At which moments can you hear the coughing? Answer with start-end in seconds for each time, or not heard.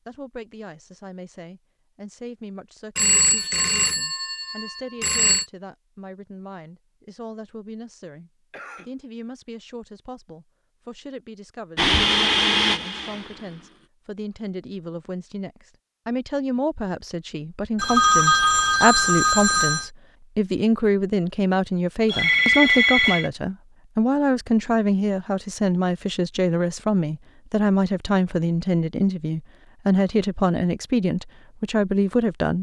8.5-8.9.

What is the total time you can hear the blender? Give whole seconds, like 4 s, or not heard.
2 s.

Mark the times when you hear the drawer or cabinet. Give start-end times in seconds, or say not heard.
not heard.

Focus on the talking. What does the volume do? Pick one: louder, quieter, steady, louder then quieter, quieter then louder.
louder.